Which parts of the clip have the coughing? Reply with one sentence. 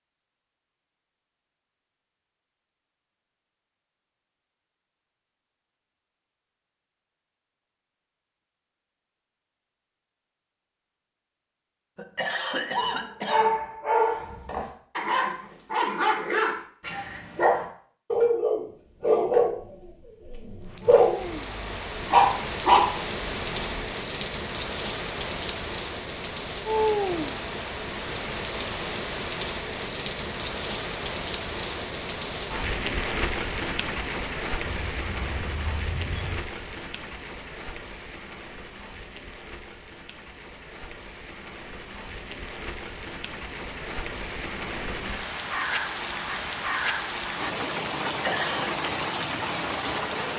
The coughing can be heard from 11.9 to 13.5 s and from 48.0 to 48.7 s.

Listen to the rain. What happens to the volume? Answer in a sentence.
The loudness of the rain goes down, then up.